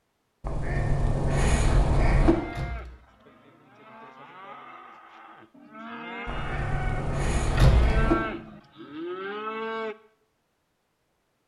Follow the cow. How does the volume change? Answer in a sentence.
The volume of the cow goes up.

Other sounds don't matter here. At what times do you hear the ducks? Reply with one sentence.
You can hear the ducks from 0.4 to 2.4 s and from 6.2 to 8.2 s.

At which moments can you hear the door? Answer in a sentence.
You can hear the door from 2.5 to 3.0 s and from 7.5 to 8.0 s.